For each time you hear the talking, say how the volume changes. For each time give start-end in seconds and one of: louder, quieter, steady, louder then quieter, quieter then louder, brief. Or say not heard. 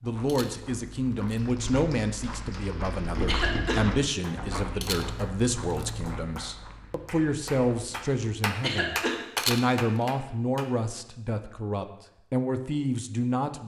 0.0-13.6 steady.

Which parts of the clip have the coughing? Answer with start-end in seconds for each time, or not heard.
3.2-3.9, 8.6-9.2.